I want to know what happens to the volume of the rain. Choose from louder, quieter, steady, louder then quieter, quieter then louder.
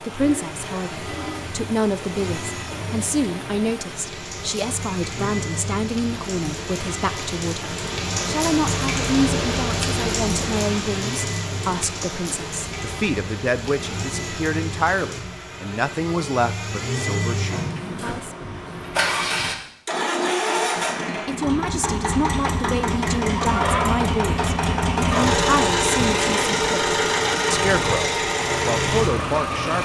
louder then quieter.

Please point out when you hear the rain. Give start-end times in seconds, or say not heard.
0.0-15.2.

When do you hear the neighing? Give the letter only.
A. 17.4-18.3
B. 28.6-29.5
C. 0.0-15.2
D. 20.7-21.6
A.